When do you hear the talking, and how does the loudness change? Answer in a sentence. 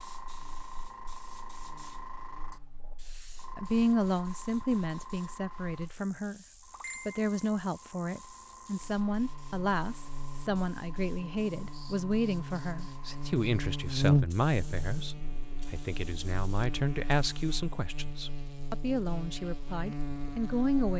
You can hear the talking briefly from 3.5 to 6.5 s; and from 7.0 to 20.9 s, at a steady volume.